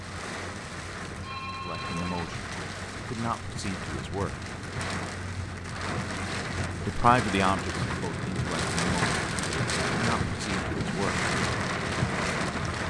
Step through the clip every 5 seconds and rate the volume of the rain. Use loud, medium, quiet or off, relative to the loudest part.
medium, loud, loud.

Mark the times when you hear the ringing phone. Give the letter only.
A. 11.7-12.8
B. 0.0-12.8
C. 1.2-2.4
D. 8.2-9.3
C.